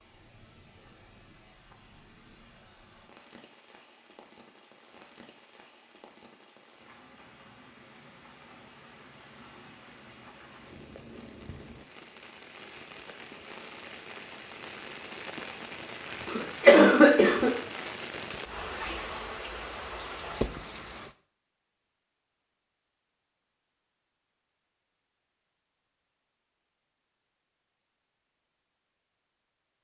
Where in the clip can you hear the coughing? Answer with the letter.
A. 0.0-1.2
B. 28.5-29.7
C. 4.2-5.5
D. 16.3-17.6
D.